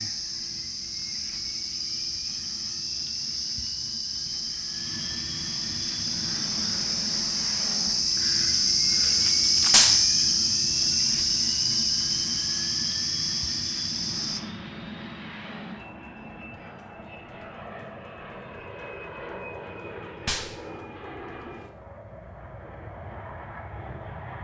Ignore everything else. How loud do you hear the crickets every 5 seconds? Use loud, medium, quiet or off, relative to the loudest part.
medium, loud, loud, off, off.